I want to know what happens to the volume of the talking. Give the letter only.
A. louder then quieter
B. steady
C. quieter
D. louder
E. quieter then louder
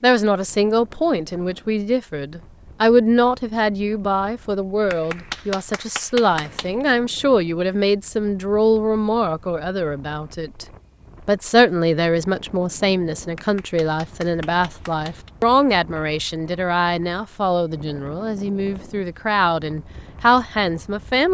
B.